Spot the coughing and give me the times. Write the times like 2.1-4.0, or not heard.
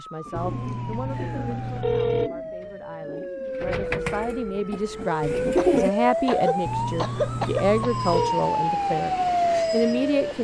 1.1-1.9, 5.5-7.9.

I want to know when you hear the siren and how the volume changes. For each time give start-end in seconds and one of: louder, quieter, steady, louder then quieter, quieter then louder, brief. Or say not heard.
0.0-10.3 louder.